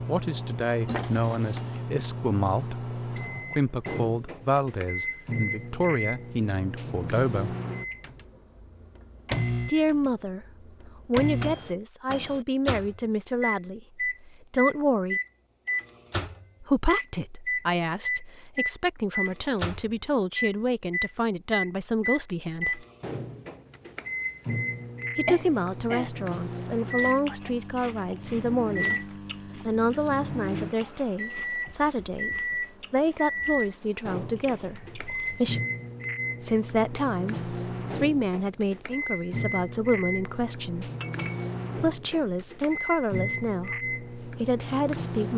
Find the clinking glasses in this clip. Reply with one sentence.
You can hear the clinking glasses from 0.8 to 1.9 s, from 25.2 to 26.1 s and from 41.0 to 41.5 s.